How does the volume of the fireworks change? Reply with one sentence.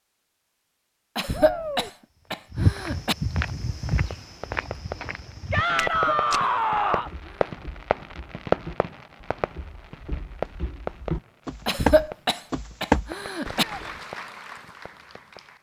The loudness of the fireworks goes up, then down.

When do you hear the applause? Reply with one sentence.
You can hear the applause from 13.4 to 15.5 s.